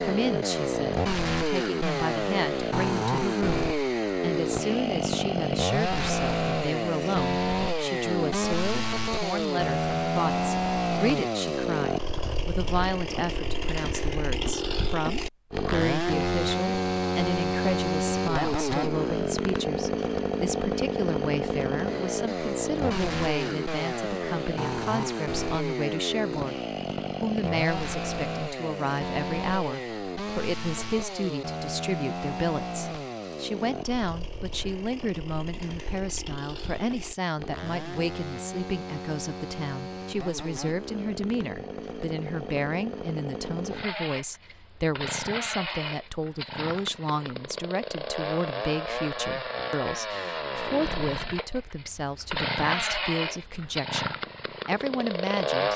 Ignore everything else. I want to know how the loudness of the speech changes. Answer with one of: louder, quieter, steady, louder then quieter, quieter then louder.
steady.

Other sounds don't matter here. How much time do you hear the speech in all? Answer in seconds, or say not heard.
55 s.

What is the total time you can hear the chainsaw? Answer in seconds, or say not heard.
56 s.